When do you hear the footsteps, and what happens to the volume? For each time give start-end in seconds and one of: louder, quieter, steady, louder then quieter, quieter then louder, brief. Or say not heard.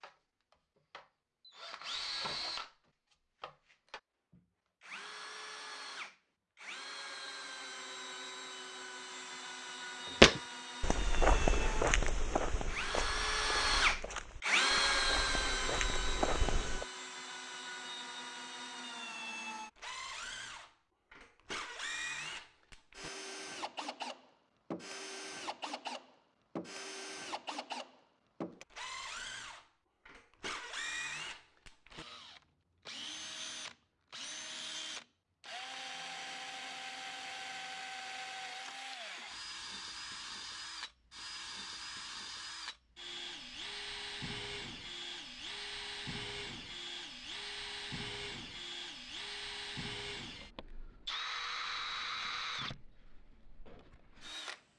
10.2-16.9 quieter then louder.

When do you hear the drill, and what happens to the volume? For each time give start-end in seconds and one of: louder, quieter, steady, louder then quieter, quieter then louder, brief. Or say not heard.
0.0-54.6 louder then quieter.